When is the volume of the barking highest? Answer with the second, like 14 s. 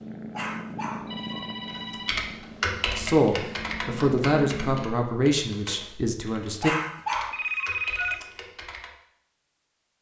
7 s.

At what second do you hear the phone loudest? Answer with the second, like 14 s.
8 s.